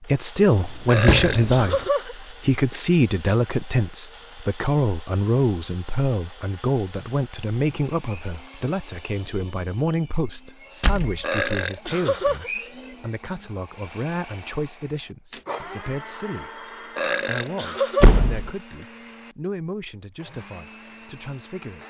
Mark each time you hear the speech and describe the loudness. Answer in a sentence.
The speech can be heard from 0.1 to 21.8 s, getting quieter.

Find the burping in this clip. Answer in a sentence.
The burping can be heard from 0.8 to 2.8 s, from 11.2 to 12.5 s and from 16.9 to 18.2 s.